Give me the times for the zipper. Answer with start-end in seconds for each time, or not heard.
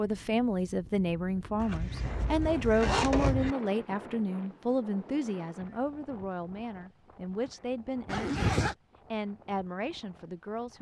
1.6-3.5, 8.1-8.8.